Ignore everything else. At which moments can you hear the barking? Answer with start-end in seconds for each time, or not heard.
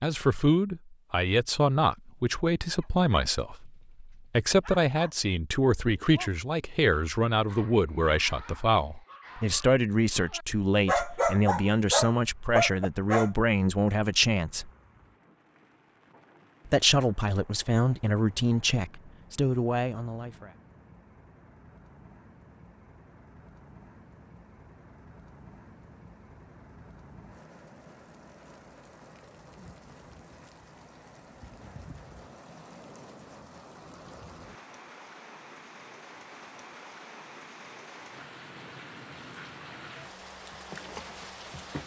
2.8-6.3, 6.9-13.3.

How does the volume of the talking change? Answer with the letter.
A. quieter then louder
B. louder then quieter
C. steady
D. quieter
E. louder
C.